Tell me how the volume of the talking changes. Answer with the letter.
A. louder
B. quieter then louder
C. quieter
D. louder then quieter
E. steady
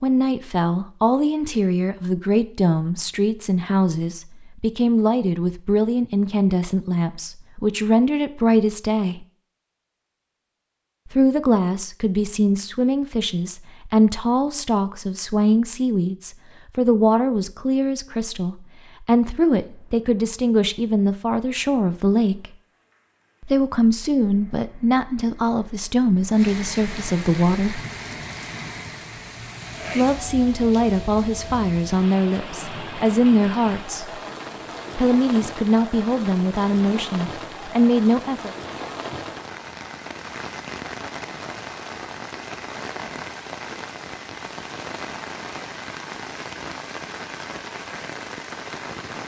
E.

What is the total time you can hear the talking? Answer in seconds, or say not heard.
33 s.